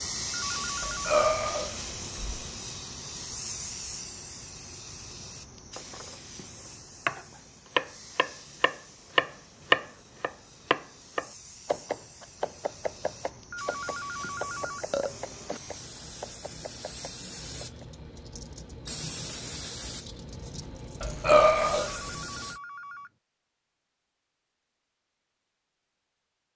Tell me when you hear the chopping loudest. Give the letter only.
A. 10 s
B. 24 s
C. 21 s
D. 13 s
A.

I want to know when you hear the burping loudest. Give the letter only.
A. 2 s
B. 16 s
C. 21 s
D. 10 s
C.